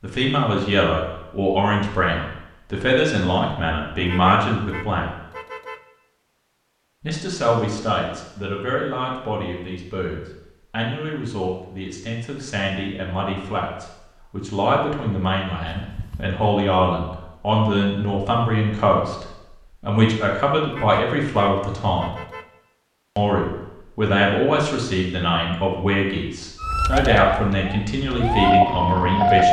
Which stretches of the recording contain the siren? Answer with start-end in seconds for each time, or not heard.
26.6-29.4.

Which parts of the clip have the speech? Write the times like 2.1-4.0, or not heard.
0.0-5.1, 7.0-22.1, 23.1-29.4.